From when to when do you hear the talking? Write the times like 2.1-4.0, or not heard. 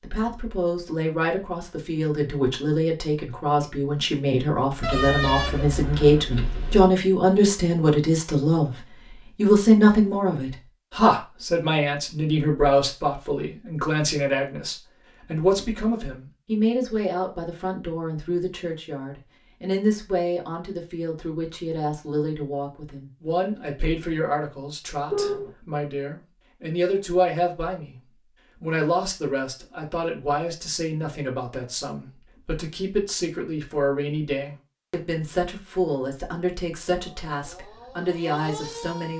0.0-27.9, 28.6-39.1.